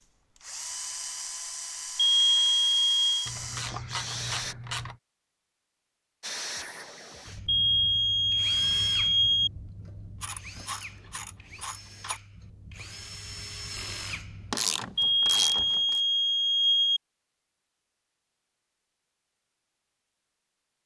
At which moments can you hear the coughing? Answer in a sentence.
You can't hear the coughing here.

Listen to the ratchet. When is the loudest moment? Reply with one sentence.
The loudest moment of the ratchet is at 15 seconds.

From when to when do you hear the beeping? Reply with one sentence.
You can hear the beeping from 1.9 to 3.3 s, from 7.5 to 9.5 s and from 14.9 to 17.0 s.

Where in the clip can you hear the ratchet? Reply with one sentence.
You can hear the ratchet from 3.2 to 5.0 s, from 10.2 to 12.2 s and from 14.5 to 16.0 s.